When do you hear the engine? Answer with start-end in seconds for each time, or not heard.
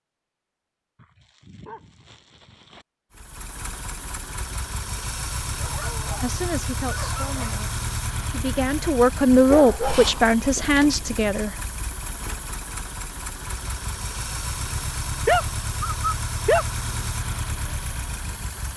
3.1-18.7.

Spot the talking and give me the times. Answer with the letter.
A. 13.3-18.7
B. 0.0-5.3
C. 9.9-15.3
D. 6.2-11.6
D.